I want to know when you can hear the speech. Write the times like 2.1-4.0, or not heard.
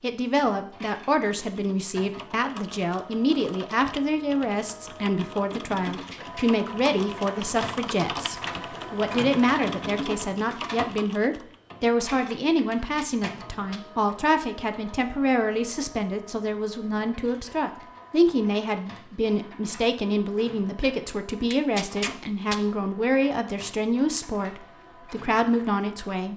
0.0-26.3.